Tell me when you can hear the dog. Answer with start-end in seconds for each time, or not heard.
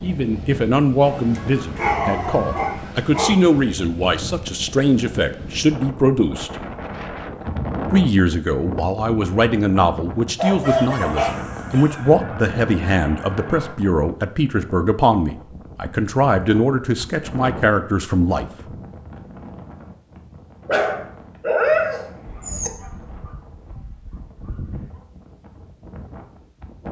1.0-3.5, 10.3-11.9, 20.6-22.7.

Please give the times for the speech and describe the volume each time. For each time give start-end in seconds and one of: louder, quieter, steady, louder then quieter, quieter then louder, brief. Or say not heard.
0.0-6.5 quieter then louder
7.9-18.4 steady.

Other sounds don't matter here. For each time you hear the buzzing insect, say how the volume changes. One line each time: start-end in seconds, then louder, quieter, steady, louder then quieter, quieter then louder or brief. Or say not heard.
not heard.